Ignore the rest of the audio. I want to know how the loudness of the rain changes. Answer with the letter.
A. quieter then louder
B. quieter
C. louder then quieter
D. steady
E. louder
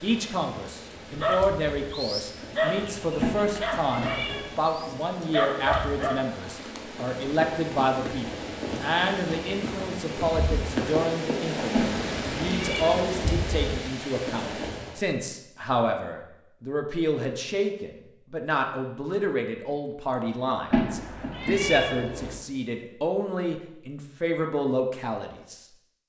E.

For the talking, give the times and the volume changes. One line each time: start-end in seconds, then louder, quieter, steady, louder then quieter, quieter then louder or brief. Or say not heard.
0.0-26.0 steady.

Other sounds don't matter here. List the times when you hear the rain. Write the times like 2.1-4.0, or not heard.
0.0-15.1.